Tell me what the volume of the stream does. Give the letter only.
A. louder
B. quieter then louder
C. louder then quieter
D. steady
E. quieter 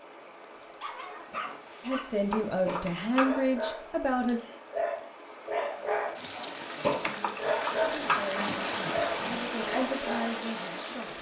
A.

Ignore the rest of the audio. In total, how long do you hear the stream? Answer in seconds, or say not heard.
11 s.